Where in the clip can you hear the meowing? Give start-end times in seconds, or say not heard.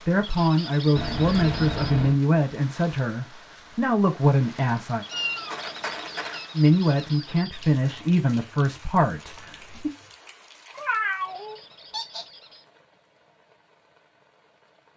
0.9-2.2, 5.1-6.5, 10.7-12.2.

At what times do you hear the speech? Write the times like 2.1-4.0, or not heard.
0.0-5.0, 6.5-9.9.